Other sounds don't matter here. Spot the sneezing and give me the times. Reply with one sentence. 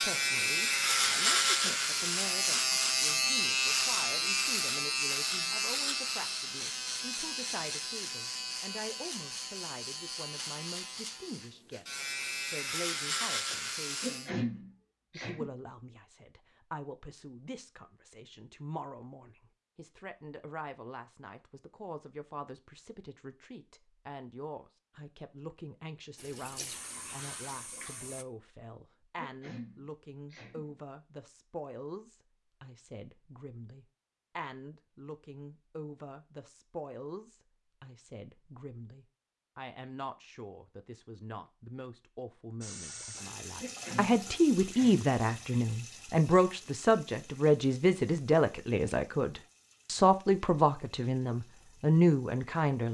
You can hear the sneezing from 14.0 to 15.5 s, from 29.1 to 30.8 s and from 43.6 to 45.0 s.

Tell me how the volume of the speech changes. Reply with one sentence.
The volume of the speech goes up.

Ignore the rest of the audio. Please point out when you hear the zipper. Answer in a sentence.
You can't hear the zipper here.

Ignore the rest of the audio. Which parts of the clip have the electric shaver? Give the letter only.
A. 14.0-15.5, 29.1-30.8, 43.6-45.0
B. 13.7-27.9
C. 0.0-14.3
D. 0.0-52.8
C.